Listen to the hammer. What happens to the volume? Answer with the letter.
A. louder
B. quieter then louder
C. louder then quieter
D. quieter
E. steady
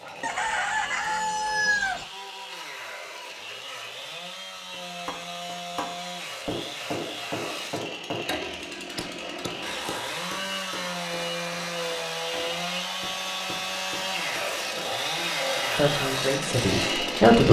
D.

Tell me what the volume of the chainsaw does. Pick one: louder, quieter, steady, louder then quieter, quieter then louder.
louder.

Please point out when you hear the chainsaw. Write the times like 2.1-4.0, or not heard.
0.0-17.4.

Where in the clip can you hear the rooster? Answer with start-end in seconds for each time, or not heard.
0.2-2.0.